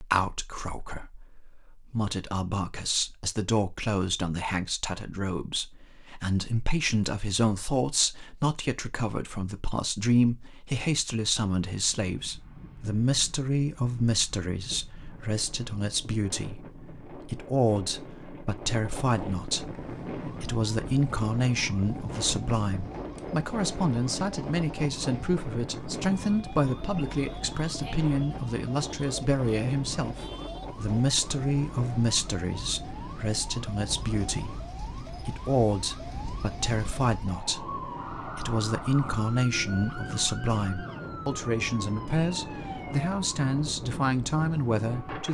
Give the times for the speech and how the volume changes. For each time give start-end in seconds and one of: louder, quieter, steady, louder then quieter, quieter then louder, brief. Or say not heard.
0.0-45.2 steady.